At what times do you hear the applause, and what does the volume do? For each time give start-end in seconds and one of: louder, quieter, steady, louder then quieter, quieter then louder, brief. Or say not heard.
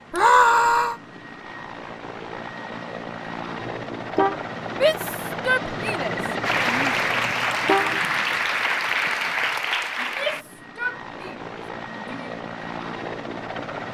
6.4-10.4 steady.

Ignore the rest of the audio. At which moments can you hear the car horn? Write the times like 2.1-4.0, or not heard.
3.6-4.4, 7.2-8.1.